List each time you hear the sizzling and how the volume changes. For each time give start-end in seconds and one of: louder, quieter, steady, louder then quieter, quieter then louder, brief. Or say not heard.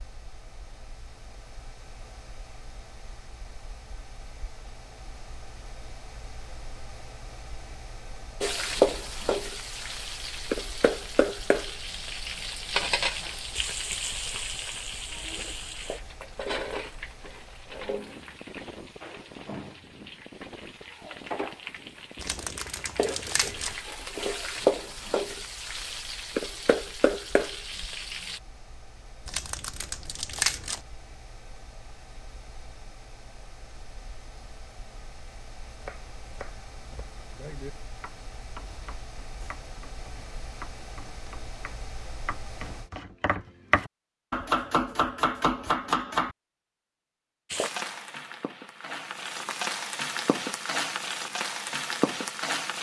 8.4-28.4 quieter then louder
47.5-52.7 louder.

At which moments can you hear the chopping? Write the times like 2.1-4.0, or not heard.
35.7-46.3.